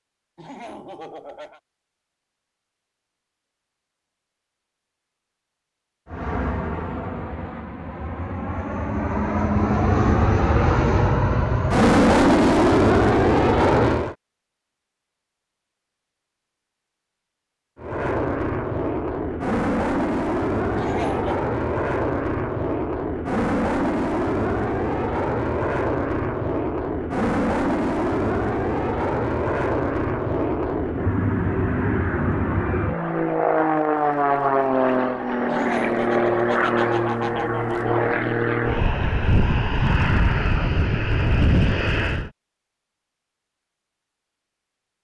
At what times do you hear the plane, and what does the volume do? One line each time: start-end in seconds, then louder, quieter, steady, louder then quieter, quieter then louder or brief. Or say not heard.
6.0-14.2 louder
17.8-42.3 steady.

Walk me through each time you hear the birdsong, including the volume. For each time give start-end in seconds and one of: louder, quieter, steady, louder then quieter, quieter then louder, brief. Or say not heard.
not heard.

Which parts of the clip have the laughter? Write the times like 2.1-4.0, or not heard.
0.3-1.6, 20.8-21.4, 35.5-38.0.